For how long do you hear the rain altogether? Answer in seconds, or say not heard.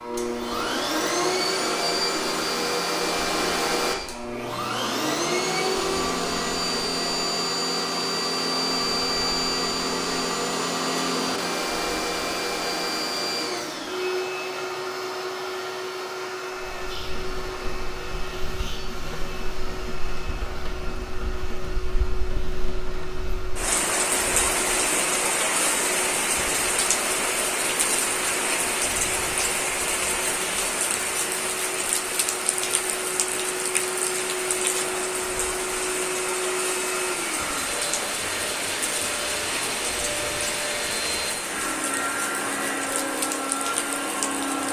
28 s.